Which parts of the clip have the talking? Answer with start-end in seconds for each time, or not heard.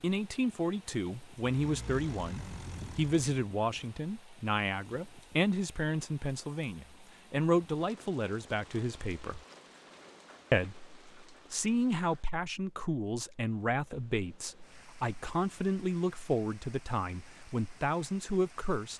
0.0-9.4, 10.5-18.9.